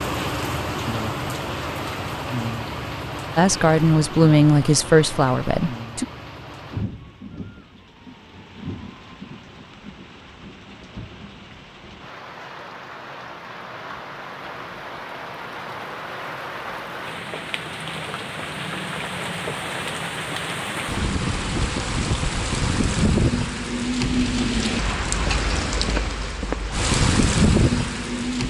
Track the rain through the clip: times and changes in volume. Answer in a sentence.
You can hear the rain from 0.0 to 28.4 s, getting quieter then louder.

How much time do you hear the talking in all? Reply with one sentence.
You can hear the talking for 3 seconds altogether.